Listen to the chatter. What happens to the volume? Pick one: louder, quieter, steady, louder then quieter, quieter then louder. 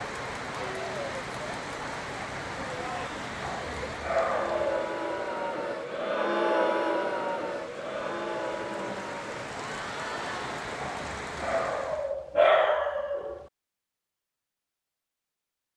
louder then quieter.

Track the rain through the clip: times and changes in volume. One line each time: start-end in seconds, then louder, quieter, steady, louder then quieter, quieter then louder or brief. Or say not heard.
0.0-12.2 quieter then louder.